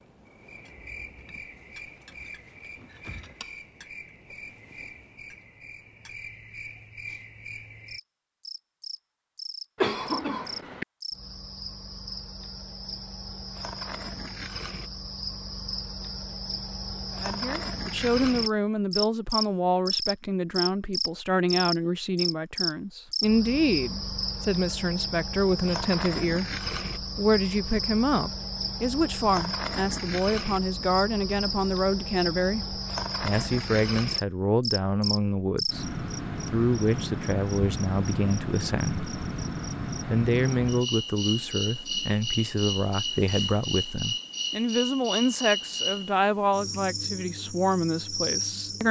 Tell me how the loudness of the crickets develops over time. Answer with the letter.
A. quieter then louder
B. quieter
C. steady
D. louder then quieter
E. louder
E.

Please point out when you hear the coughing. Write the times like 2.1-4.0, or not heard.
9.8-10.8.